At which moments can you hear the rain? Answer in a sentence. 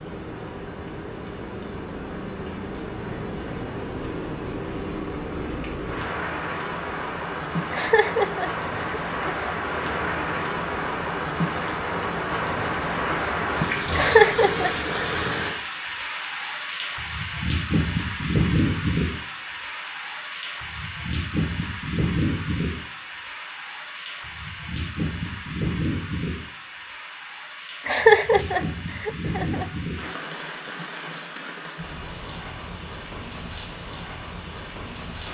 The rain can be heard from 0.0 to 35.2 s.